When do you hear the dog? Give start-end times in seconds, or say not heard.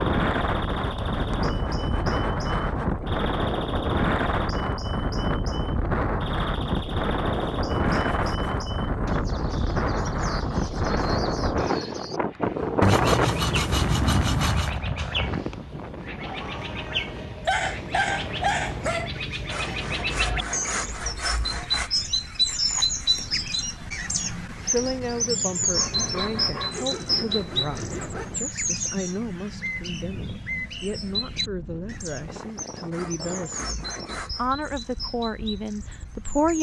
17.4-19.1.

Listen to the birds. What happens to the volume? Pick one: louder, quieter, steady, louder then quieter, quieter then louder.
louder then quieter.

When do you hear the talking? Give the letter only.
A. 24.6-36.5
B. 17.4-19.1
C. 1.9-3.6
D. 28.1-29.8
A.